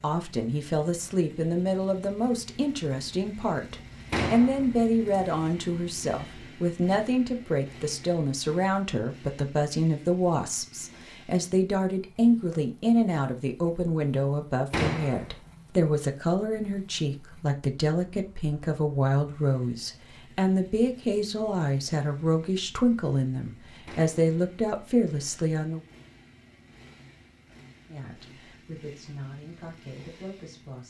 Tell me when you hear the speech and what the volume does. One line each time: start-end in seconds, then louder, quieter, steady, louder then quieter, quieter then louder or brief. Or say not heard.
0.0-25.8 steady
27.9-30.8 brief.